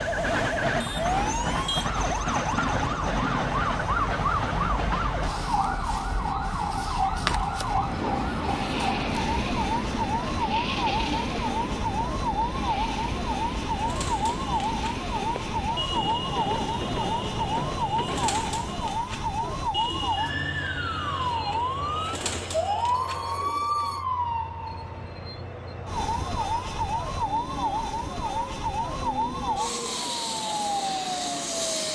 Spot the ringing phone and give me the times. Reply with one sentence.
You can hear the ringing phone from 22.9 to 24.1 s.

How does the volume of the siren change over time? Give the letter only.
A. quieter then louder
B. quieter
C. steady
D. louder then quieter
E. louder
C.